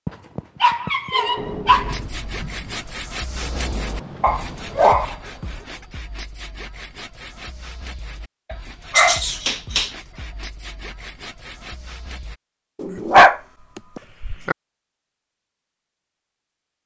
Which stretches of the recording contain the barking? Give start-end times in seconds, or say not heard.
0.1-1.9, 4.2-5.5, 8.5-9.9, 12.8-14.6.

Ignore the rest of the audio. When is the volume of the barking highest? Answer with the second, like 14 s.
13 s.